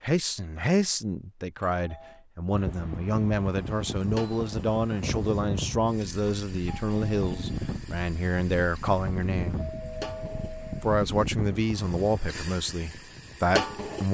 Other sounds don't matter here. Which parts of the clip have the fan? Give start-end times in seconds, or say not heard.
2.5-14.0.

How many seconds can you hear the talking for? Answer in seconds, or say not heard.
13 s.